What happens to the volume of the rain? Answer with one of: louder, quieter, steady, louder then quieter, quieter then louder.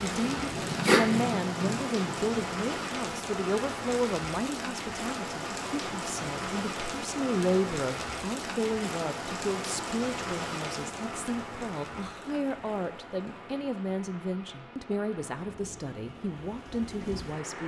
quieter.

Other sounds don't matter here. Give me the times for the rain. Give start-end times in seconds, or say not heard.
0.0-17.6.